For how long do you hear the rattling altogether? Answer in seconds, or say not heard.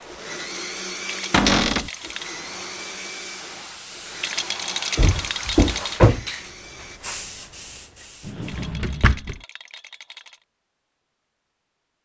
5 s.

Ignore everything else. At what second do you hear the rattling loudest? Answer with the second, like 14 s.
5 s.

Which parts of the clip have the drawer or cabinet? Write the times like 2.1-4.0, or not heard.
1.3-1.9, 5.0-6.2, 8.2-9.4.